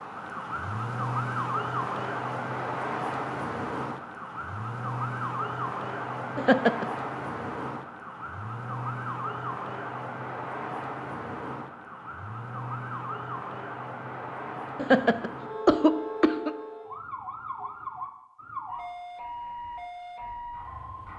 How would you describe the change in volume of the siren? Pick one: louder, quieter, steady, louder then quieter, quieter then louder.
quieter.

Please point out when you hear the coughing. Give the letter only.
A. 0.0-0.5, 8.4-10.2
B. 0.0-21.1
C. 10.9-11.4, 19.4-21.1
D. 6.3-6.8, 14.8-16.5
D.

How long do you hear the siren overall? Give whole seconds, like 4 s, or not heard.
21 s.